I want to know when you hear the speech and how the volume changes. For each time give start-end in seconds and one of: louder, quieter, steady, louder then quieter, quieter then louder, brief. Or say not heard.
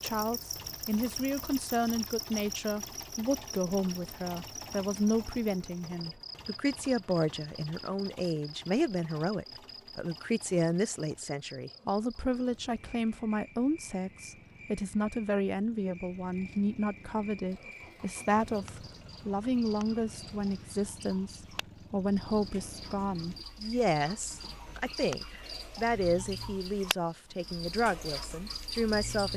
0.0-29.3 steady.